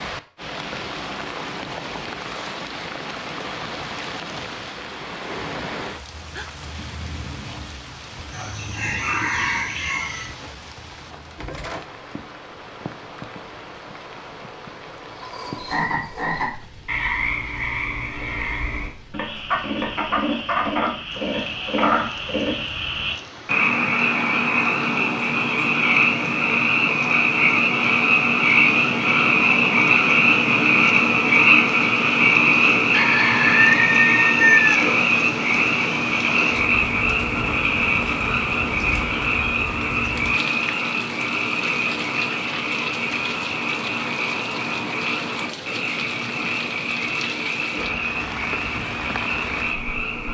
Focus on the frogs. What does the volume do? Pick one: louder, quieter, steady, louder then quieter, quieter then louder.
louder then quieter.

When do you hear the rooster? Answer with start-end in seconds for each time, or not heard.
8.3-10.3, 32.9-34.8.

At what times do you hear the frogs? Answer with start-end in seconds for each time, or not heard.
15.1-50.2.